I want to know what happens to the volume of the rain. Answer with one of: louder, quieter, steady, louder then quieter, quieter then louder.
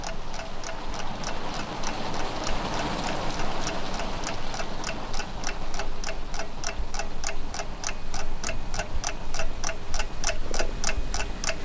quieter.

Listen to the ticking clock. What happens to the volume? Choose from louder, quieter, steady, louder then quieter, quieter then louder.
louder.